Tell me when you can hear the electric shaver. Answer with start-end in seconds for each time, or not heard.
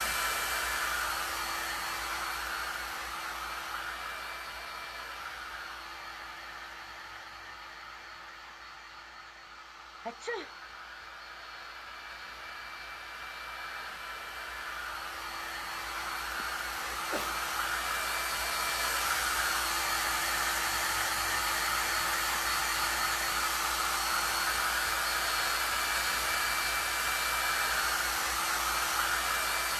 not heard.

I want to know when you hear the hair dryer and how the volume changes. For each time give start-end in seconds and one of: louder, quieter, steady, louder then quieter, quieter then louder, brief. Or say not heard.
0.0-29.7 quieter then louder.